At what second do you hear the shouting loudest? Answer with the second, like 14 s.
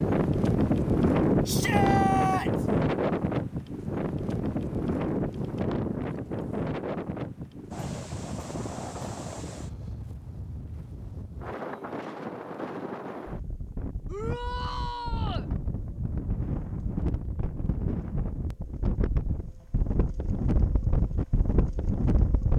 2 s.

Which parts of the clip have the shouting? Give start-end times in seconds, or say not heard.
1.4-2.6, 14.1-15.5.